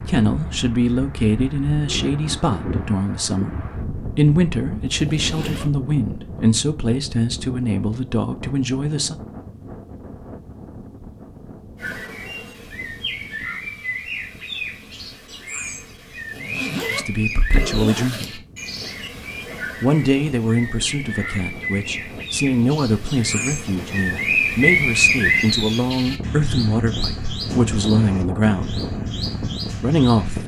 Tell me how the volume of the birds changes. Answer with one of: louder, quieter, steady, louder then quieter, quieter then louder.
louder then quieter.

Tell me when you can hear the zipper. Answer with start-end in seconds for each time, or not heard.
5.0-5.7, 16.2-18.9.